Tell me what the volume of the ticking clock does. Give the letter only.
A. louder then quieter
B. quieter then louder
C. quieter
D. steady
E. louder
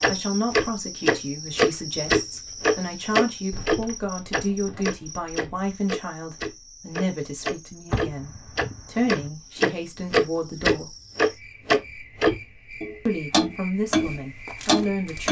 B.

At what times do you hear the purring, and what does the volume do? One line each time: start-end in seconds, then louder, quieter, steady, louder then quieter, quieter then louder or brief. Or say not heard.
not heard.